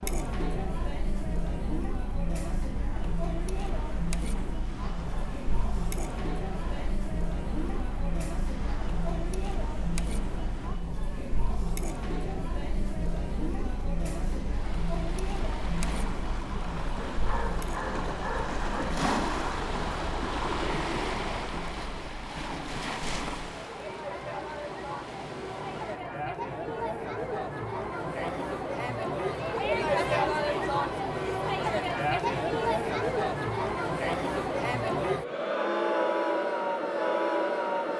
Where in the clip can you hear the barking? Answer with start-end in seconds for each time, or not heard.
17.1-18.9.